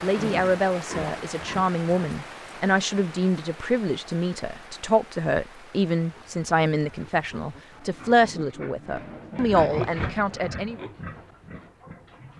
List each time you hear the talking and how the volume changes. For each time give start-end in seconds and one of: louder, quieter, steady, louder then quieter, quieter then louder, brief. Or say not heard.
0.0-10.8 steady.